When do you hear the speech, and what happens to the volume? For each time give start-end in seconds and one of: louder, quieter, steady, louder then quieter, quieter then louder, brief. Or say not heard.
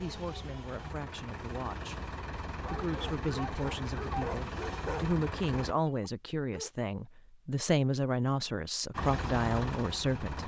0.0-10.4 louder.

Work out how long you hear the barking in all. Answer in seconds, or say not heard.
4 s.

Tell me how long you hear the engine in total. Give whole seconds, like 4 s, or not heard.
7 s.